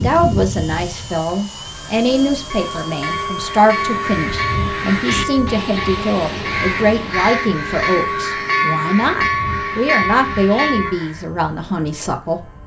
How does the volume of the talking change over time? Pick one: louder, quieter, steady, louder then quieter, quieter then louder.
steady.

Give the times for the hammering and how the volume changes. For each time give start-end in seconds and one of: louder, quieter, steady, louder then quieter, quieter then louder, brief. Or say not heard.
not heard.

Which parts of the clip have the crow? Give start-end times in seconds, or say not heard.
3.4-11.2.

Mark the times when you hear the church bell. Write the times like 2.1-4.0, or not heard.
1.9-10.9.